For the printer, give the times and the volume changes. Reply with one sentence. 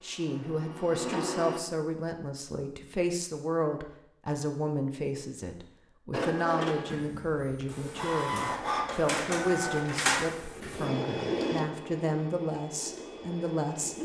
The printer can be heard briefly from 0.0 to 1.6 s; and from 6.1 to 14.0 s, getting louder then quieter.